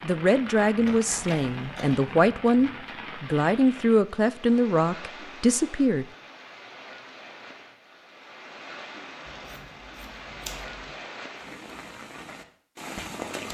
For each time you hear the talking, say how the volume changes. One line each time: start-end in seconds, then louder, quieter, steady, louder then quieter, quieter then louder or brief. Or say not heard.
0.0-6.0 steady.